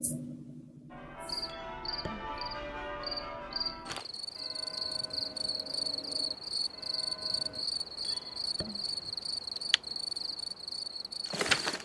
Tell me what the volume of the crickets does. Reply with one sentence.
The loudness of the crickets goes up.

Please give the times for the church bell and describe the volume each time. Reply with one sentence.
The church bell can be heard from 0.9 to 7.7 s, getting quieter.